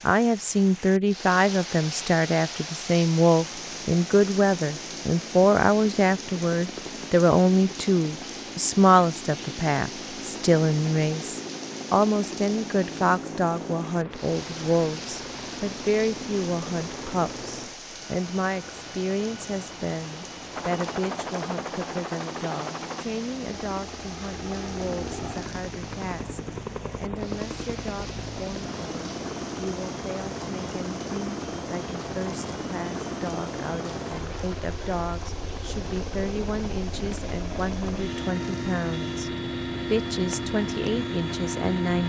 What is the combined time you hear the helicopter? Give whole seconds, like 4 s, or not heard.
39 s.